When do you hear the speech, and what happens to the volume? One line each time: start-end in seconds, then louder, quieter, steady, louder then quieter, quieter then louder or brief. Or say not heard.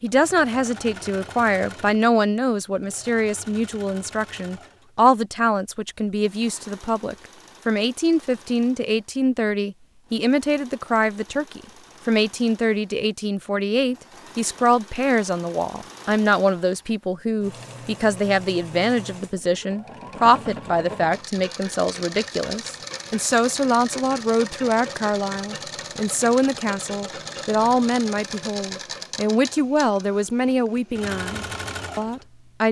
0.0-32.6 steady.